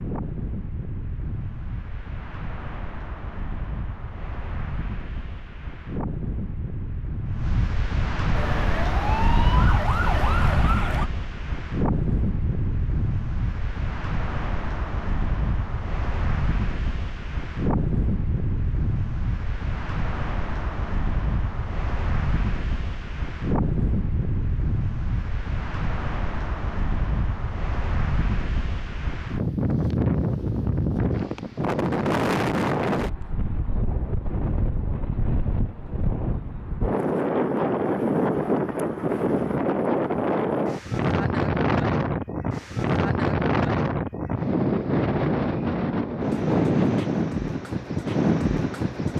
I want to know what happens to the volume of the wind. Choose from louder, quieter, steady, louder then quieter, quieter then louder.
louder.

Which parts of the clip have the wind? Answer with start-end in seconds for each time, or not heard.
0.0-49.1.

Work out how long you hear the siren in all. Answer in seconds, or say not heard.
3 s.